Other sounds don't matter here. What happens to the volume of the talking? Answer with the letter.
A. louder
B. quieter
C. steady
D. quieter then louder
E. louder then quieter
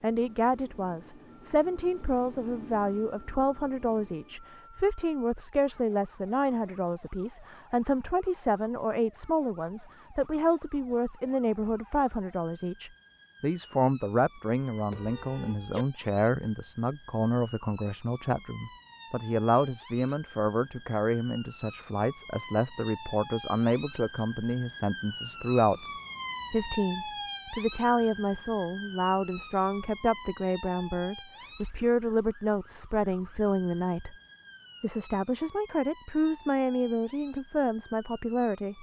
C.